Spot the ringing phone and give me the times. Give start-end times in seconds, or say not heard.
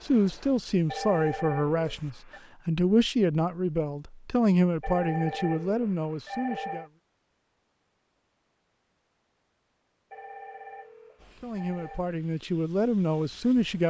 0.8-2.4, 4.8-6.9, 10.1-12.1.